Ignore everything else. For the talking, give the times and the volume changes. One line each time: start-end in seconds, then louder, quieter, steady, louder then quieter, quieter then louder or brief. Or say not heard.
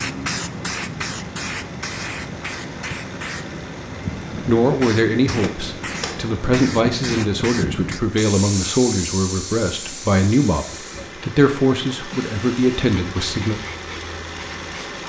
4.5-13.6 steady.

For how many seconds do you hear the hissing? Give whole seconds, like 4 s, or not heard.
15 s.